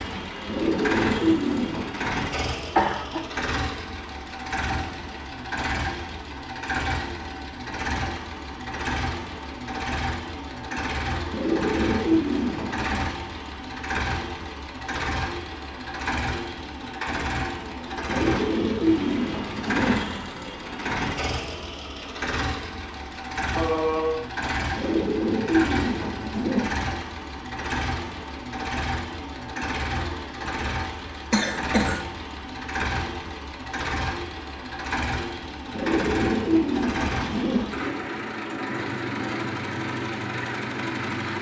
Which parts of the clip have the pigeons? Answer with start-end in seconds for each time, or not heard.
0.5-1.9, 11.3-13.1, 18.1-20.0, 24.8-26.7, 35.7-37.6.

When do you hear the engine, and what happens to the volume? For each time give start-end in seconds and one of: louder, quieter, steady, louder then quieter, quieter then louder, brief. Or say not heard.
0.0-41.3 steady.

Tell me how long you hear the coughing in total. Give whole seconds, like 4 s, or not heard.
2 s.